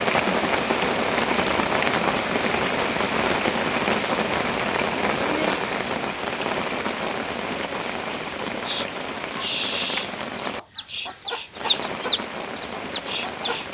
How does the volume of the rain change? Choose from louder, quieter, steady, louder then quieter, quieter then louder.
quieter.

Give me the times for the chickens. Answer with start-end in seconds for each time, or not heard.
8.5-13.6.